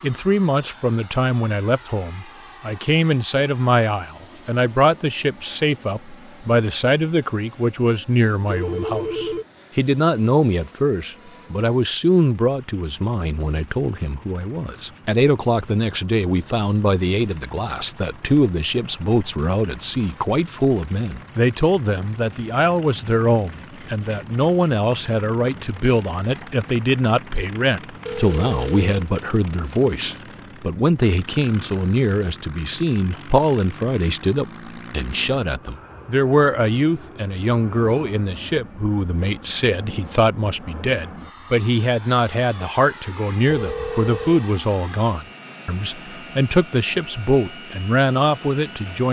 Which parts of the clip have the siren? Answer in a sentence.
You can't hear the siren here.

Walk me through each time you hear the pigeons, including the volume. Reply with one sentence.
You can't hear the pigeons here.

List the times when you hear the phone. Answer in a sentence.
The phone can be heard from 8.4 to 9.4 s, from 28.1 to 29.1 s and from 43.5 to 44.5 s.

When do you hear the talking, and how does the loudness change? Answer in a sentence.
You can hear the talking from 0.0 to 49.0 s, at a steady volume.